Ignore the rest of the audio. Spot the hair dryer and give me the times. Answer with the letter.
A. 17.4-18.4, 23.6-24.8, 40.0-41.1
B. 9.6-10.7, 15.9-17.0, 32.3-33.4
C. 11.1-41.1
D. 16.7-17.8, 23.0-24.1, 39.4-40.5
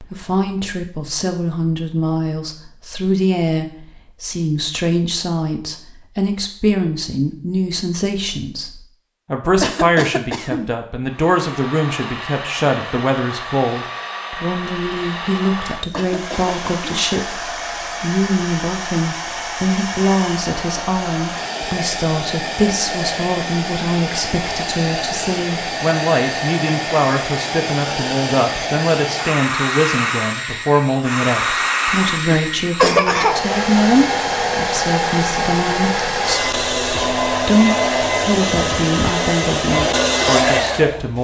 C.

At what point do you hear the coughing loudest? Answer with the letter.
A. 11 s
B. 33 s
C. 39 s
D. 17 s
B.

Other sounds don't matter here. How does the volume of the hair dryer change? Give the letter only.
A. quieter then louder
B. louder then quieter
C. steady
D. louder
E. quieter
D.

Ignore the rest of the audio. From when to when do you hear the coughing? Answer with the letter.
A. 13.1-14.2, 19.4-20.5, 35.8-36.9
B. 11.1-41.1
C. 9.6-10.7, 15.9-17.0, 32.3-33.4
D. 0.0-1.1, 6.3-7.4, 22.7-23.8
C.